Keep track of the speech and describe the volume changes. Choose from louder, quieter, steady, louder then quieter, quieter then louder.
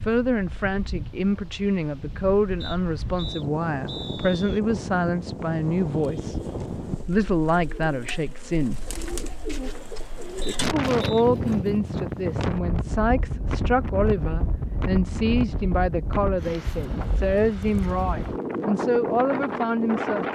steady.